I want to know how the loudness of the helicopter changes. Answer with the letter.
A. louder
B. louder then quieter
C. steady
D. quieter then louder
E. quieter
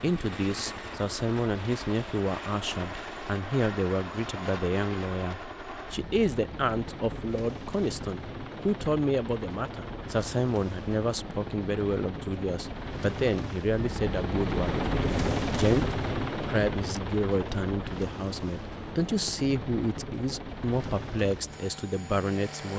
B.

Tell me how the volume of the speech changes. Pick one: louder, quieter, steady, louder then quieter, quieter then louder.
steady.